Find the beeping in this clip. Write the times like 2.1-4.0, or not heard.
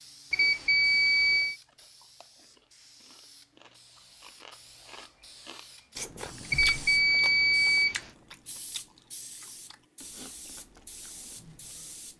0.3-1.6, 6.5-8.1.